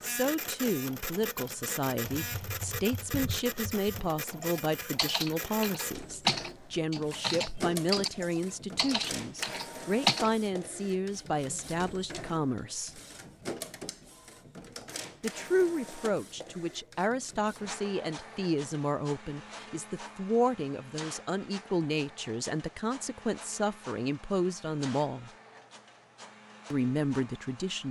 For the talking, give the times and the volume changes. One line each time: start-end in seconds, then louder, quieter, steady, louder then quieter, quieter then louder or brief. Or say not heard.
0.0-13.0 steady
15.2-25.3 steady
26.7-27.8 brief.